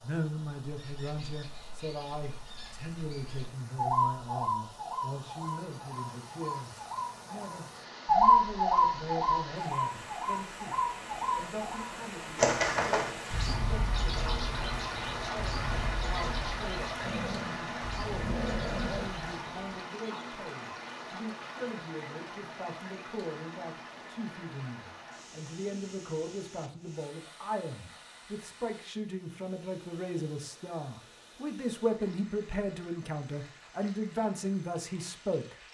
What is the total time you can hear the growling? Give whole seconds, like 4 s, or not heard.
2 s.